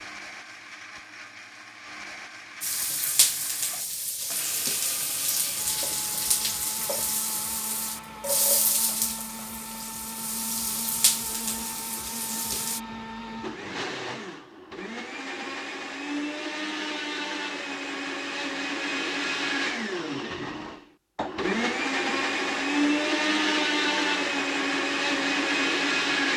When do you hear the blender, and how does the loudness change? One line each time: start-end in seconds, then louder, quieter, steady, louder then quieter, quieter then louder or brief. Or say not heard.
0.0-26.3 louder.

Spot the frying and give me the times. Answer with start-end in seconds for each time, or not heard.
2.6-12.8.